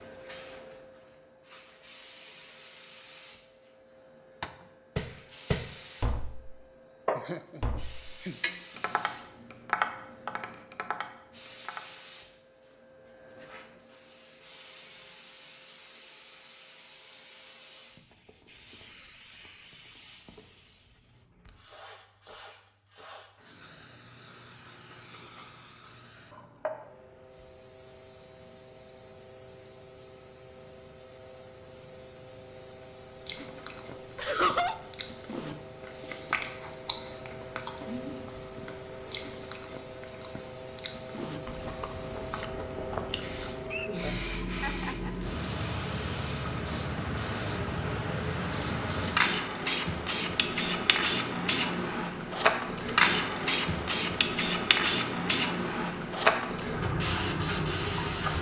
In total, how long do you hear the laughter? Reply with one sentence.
The laughter can be heard for 3 seconds in total.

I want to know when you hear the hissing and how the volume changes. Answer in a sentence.
You can hear the hissing from 0.0 to 58.3 s, getting louder.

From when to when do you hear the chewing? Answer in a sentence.
The chewing can be heard from 33.2 to 43.7 s.